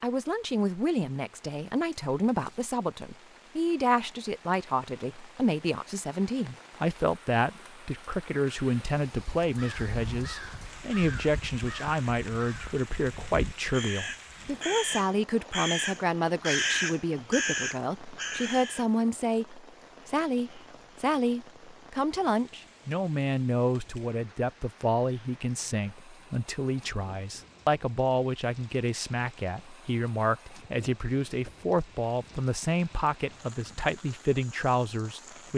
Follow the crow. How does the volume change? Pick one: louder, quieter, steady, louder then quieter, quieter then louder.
louder.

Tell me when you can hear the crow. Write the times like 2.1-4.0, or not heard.
9.4-18.9.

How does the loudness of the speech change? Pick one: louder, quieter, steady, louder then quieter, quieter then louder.
steady.